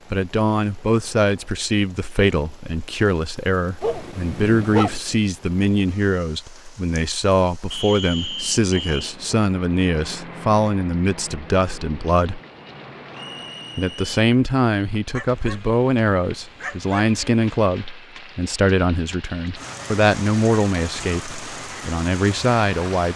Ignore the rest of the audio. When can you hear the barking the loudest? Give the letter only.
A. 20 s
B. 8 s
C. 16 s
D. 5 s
D.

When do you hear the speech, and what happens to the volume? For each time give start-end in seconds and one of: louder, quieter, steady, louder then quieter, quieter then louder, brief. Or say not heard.
0.1-12.4 steady
13.8-23.1 steady.